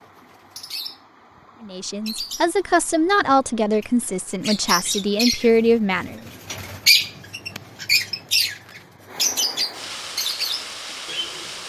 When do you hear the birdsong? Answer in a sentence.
You can hear the birdsong from 0.0 to 11.6 s.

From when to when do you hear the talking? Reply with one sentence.
The talking can be heard from 1.6 to 6.2 s.